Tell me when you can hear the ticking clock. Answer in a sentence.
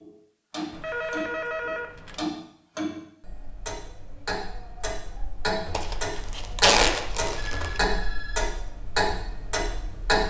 You can hear the ticking clock from 0.0 to 10.2 s.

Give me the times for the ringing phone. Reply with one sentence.
The ringing phone can be heard from 0.7 to 2.2 s and from 7.3 to 8.6 s.